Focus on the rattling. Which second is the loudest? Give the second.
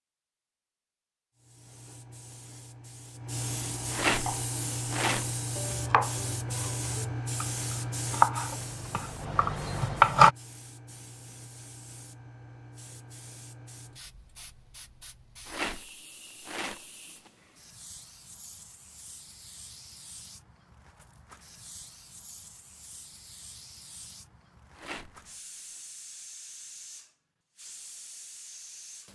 4 s.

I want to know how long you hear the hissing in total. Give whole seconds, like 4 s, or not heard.
28 s.